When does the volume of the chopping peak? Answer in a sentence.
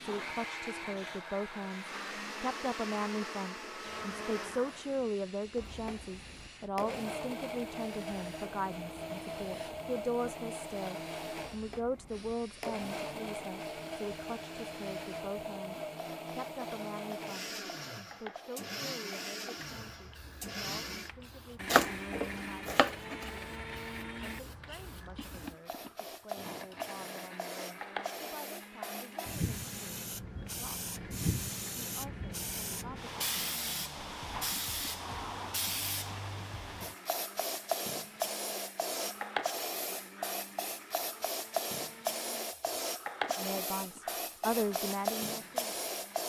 The loudest moment of the chopping is at 22 seconds.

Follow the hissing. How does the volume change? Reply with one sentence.
The volume of the hissing goes up.